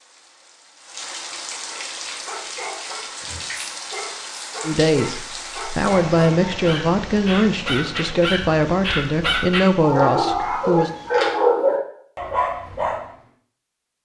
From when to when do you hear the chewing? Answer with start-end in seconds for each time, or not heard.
not heard.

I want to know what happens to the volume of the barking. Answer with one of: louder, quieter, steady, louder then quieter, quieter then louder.
louder.